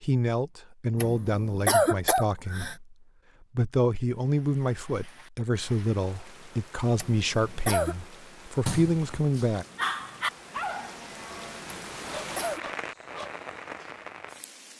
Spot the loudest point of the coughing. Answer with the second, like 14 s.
2 s.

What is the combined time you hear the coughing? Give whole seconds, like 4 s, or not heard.
4 s.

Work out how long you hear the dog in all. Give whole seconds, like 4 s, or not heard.
5 s.